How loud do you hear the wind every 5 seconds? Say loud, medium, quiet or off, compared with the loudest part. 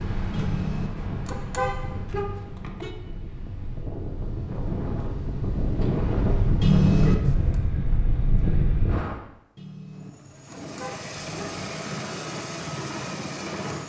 medium, loud, off.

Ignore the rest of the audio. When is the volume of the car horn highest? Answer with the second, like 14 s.
7 s.